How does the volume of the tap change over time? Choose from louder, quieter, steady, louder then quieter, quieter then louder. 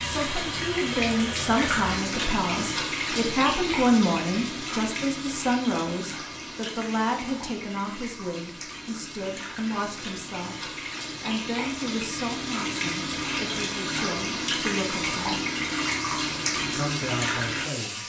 quieter then louder.